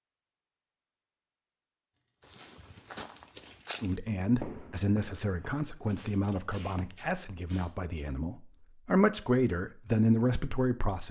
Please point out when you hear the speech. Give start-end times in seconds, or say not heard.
3.8-11.0.